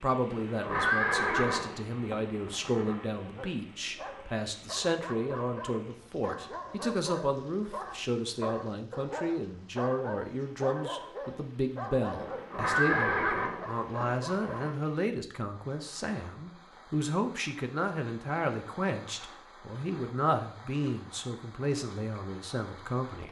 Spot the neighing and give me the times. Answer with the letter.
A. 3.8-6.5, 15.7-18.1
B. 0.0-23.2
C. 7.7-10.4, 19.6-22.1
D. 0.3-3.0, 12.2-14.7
D.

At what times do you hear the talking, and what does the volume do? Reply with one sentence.
The talking can be heard from 0.0 to 23.2 s, at a steady volume.